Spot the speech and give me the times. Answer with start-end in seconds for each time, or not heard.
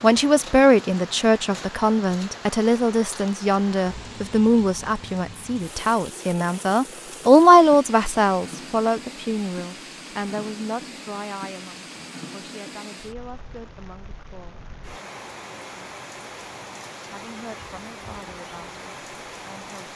0.0-14.7, 17.1-19.9.